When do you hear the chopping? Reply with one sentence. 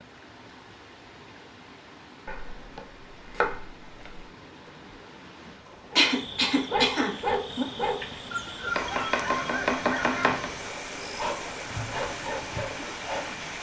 The chopping can be heard from 2.2 to 4.2 s and from 8.8 to 10.5 s.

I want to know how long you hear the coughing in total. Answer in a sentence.
The coughing can be heard for 2 seconds in total.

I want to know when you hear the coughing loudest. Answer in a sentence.
The loudest moment of the coughing is at 6 seconds.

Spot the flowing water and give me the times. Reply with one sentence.
You can hear the flowing water from 0.0 to 13.5 s.